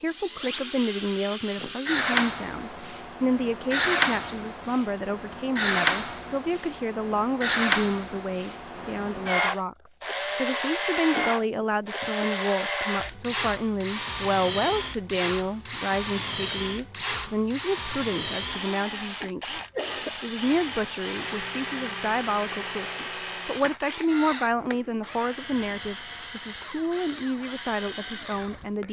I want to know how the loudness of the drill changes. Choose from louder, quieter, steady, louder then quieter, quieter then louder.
quieter.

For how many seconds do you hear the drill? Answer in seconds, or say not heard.
29 s.